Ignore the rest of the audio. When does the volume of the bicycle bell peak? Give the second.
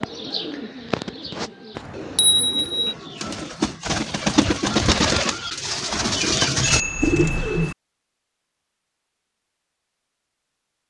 2 s.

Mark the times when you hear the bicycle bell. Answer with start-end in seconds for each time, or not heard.
1.8-3.0, 6.6-7.8.